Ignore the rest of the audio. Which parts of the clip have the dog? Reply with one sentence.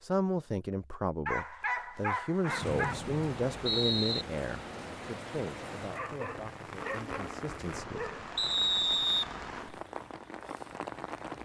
The dog can be heard from 1.2 to 3.0 s and from 5.9 to 8.2 s.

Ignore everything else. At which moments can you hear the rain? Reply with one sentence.
You can hear the rain from 2.5 to 11.4 s.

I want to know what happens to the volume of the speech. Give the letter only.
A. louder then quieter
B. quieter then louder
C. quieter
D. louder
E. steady
C.